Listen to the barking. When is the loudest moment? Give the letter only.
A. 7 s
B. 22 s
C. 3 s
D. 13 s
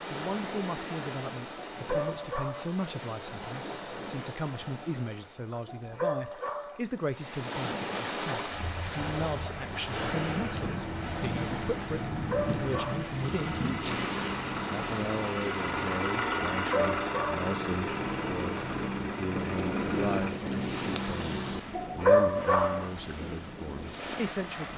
B.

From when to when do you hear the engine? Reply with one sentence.
You can hear the engine from 8.4 to 20.4 s.